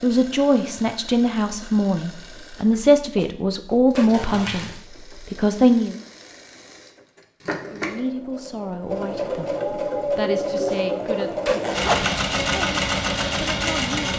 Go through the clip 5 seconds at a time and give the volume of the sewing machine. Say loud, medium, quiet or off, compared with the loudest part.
quiet, medium, loud.